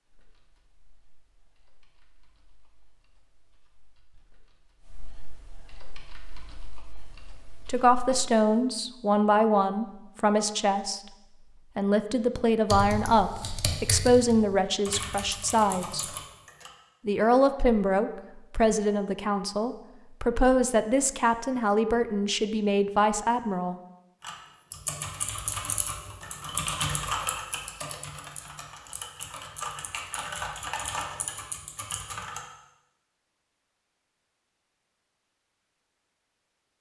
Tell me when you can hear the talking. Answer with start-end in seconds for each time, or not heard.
7.7-11.0, 11.8-16.1, 17.1-23.8.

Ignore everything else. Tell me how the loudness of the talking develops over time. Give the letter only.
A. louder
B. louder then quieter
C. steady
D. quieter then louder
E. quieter
C.